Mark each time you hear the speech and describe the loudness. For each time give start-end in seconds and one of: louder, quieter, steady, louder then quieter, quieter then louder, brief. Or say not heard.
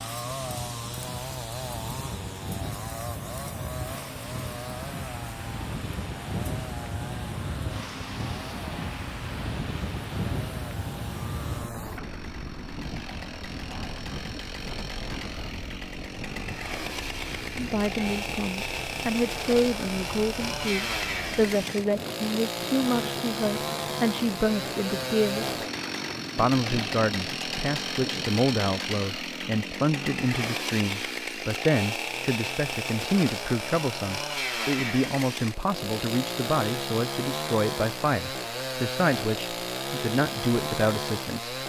17.6-25.6 steady
26.4-41.5 steady.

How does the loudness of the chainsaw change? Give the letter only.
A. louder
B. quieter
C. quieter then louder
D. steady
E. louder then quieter
A.